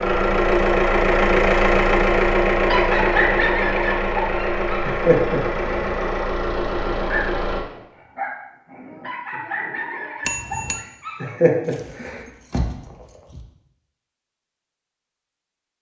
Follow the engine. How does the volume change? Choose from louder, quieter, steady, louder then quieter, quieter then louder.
quieter.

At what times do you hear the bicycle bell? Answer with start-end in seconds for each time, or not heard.
10.2-10.8.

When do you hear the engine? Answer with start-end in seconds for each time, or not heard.
0.0-7.7.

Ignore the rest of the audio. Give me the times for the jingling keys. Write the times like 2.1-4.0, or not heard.
11.7-13.4.